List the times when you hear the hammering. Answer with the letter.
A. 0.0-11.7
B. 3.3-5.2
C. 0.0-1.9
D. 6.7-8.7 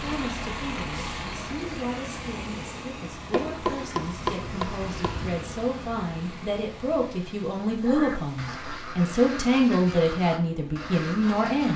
B.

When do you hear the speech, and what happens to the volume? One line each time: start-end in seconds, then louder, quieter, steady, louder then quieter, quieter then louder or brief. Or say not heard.
0.0-11.7 louder.